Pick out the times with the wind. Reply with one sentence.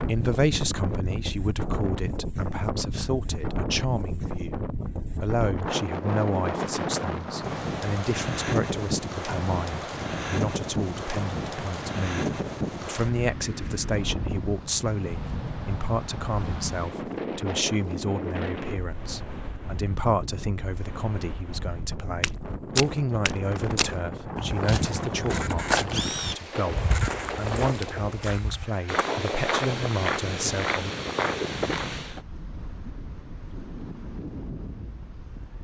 You can hear the wind from 0.0 to 35.5 s.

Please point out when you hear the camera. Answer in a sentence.
The camera can be heard from 25.1 to 27.2 s.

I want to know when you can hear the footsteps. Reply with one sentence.
You can hear the footsteps from 22.2 to 32.2 s.